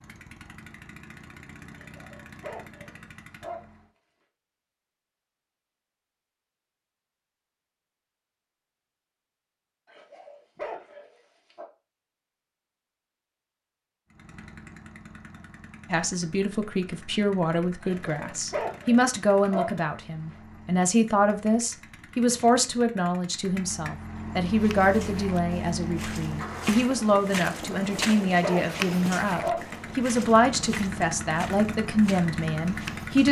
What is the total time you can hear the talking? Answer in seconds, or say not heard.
17 s.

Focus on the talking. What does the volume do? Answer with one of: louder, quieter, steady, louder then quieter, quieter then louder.
steady.